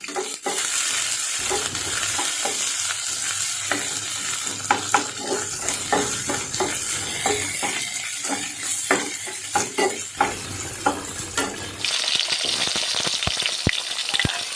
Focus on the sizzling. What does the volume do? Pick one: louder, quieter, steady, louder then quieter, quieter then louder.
steady.